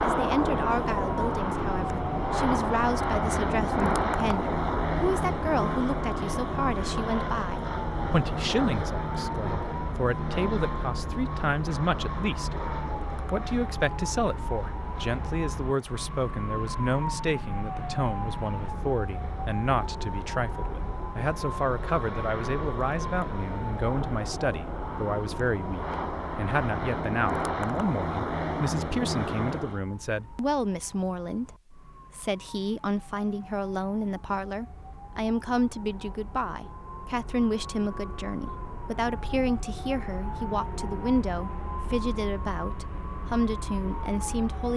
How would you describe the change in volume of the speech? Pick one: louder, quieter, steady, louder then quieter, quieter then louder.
steady.